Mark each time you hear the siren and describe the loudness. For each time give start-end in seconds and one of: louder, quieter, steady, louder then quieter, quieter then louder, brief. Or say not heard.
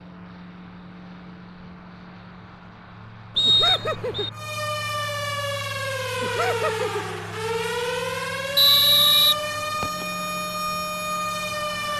4.3-11.9 steady.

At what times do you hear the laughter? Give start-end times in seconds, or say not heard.
3.5-4.3, 6.2-7.0.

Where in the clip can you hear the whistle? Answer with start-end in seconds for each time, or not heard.
3.4-4.3, 8.6-10.1.